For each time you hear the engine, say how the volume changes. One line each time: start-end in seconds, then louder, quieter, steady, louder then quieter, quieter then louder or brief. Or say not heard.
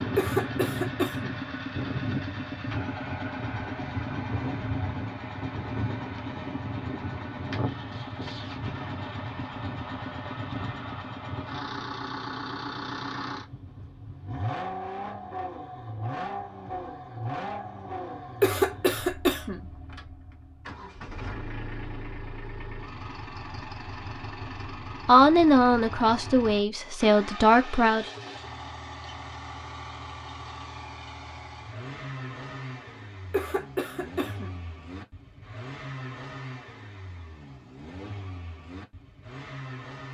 0.0-40.1 quieter.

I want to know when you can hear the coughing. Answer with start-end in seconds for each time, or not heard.
0.1-1.4, 18.4-19.6, 33.3-34.6.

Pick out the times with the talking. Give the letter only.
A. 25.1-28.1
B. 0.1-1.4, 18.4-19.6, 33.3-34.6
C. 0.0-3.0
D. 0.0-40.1
A.